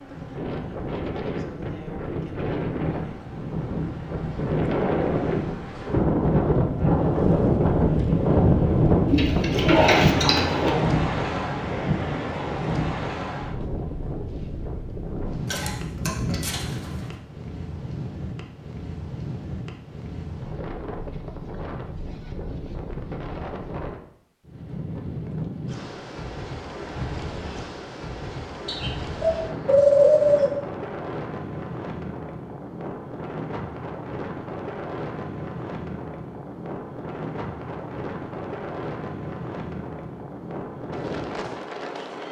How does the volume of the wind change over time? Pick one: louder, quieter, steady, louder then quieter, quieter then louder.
quieter.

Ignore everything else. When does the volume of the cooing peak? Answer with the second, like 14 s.
30 s.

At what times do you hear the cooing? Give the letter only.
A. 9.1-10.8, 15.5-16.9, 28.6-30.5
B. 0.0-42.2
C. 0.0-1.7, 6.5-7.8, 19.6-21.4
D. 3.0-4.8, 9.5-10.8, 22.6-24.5
A.